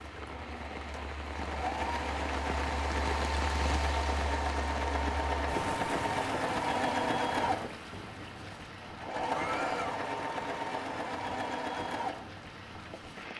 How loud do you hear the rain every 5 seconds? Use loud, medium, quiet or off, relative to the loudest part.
loud, loud, medium.